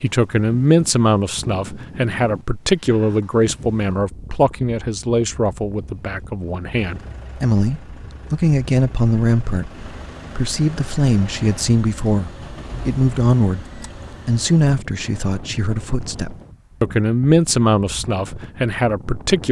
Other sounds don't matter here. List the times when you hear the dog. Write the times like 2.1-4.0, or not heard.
not heard.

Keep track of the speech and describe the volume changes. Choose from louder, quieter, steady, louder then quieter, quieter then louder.
steady.